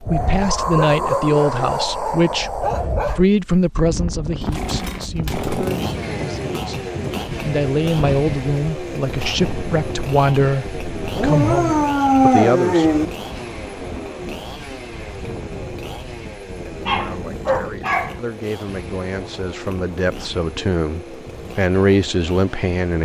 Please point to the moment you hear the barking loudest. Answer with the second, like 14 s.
12 s.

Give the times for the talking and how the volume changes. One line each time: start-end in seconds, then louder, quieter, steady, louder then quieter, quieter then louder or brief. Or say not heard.
0.0-12.8 quieter then louder
16.3-23.0 louder.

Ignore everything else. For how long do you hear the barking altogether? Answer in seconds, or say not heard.
6 s.